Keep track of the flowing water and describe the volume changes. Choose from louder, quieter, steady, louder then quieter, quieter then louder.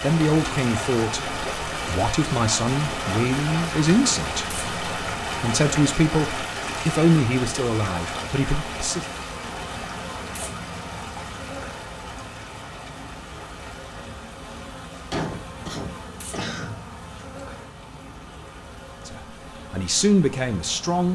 quieter.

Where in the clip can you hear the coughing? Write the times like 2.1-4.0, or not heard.
15.1-16.8.